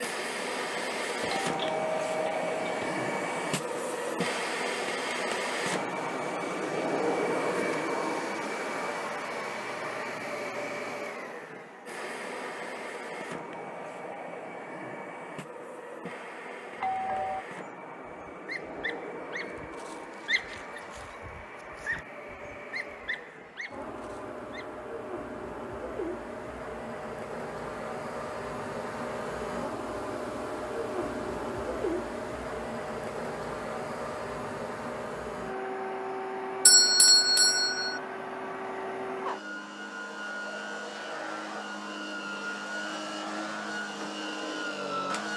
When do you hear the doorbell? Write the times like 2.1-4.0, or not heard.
1.2-3.0, 16.8-17.4, 36.6-38.0.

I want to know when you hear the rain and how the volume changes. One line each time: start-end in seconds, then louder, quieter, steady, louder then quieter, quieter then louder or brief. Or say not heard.
not heard.